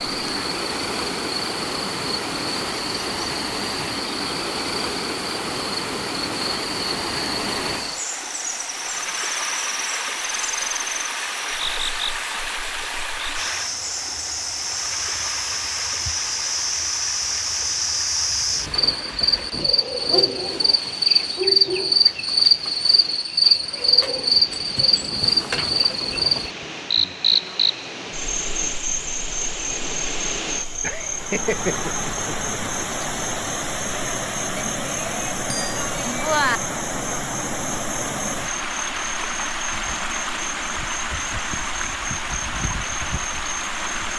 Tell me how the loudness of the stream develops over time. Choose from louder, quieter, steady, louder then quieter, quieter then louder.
quieter then louder.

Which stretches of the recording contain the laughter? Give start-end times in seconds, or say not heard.
30.8-32.9.